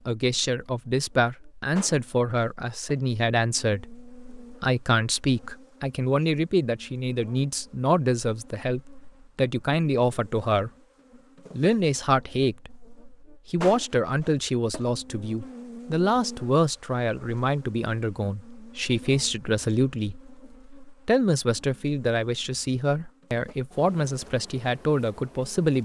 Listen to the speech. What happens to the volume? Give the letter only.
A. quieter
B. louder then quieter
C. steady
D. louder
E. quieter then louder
C.